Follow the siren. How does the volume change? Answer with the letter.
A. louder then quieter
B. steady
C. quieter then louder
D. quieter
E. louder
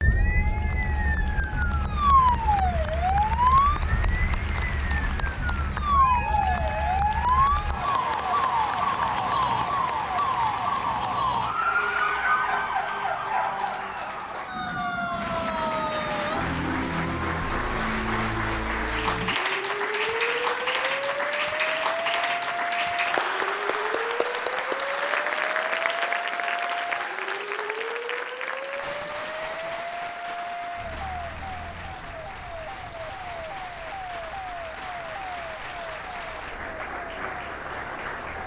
D.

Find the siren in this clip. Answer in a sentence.
The siren can be heard from 0.0 to 38.4 s.